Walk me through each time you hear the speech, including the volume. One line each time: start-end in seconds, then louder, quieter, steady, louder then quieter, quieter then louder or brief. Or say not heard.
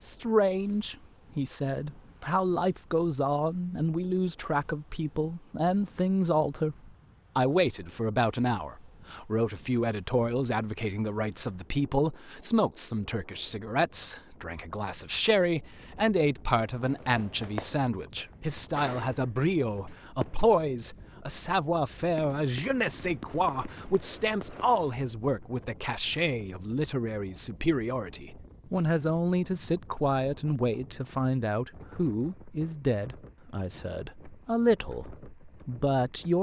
0.0-36.3 steady.